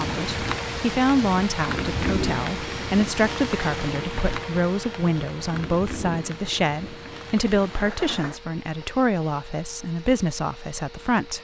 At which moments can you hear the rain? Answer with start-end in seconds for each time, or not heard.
0.0-8.4.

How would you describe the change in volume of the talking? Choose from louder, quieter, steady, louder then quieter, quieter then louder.
steady.